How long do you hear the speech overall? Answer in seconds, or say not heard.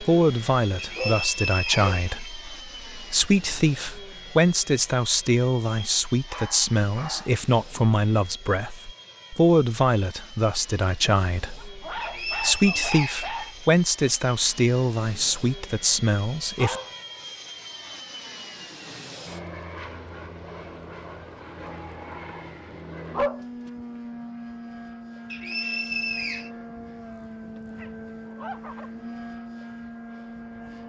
17 s.